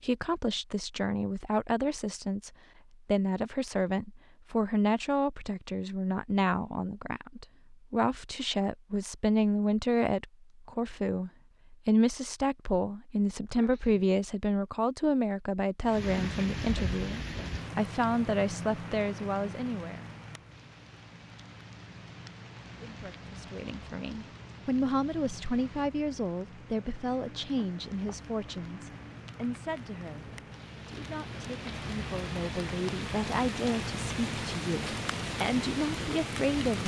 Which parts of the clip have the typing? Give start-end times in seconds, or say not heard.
not heard.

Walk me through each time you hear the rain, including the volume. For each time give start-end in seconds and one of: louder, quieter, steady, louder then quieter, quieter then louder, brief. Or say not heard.
15.8-36.8 quieter then louder.